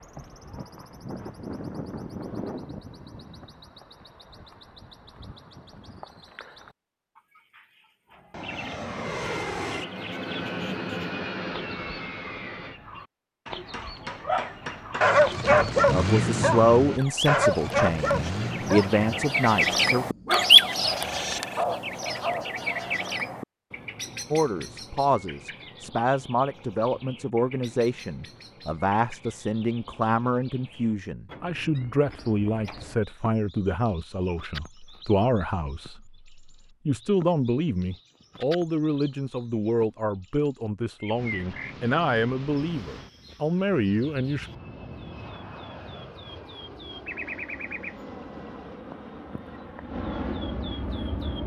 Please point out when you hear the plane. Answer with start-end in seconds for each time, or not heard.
8.1-12.8, 41.1-51.4.